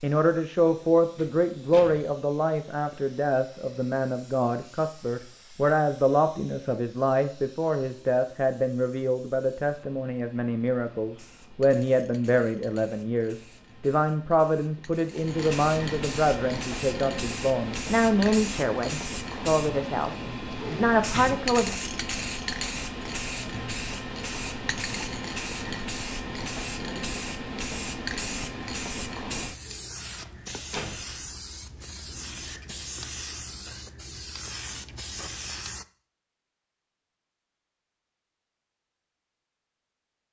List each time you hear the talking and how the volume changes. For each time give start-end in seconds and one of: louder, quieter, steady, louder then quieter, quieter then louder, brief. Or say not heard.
0.0-21.7 steady.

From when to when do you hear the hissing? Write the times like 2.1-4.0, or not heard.
0.0-35.9.